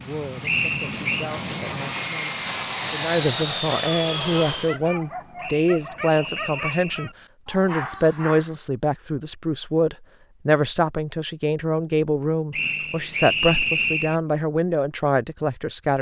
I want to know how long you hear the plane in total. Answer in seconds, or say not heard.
5 s.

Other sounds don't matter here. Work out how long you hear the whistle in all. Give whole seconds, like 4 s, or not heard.
4 s.